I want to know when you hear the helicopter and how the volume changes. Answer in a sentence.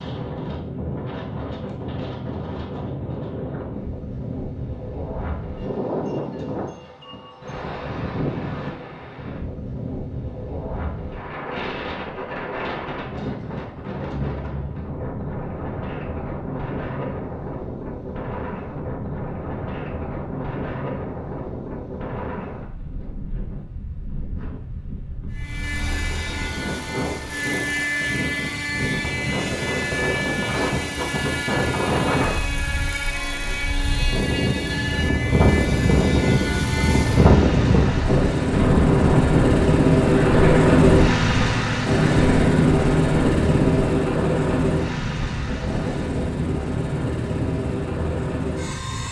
You can hear the helicopter from 25.3 to 49.0 s, getting louder then quieter.